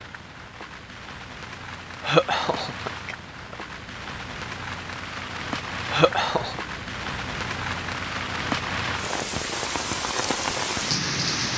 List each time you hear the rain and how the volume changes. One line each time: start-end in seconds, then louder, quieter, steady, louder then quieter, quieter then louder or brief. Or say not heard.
0.0-11.5 louder.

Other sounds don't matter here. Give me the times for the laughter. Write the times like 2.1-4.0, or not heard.
2.0-3.5, 5.9-6.6.